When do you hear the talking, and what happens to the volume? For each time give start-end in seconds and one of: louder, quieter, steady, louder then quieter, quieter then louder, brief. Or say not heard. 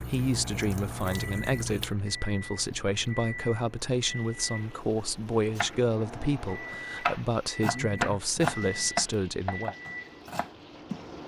0.0-9.8 steady.